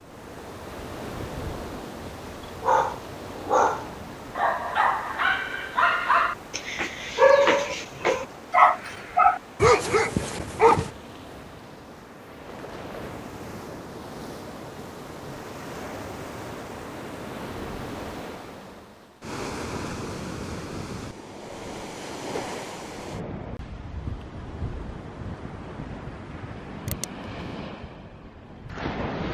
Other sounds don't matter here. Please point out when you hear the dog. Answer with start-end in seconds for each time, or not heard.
2.4-10.9.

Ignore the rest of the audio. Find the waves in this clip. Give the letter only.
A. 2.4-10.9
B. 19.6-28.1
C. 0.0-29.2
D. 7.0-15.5
C.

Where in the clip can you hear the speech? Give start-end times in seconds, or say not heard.
not heard.